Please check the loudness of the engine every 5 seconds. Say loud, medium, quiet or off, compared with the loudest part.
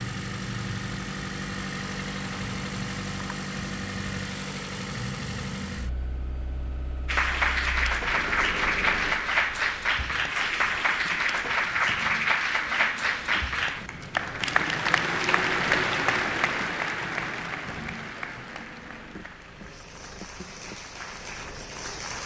loud, medium, quiet, quiet, quiet.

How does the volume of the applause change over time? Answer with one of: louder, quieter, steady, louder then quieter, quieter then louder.
quieter.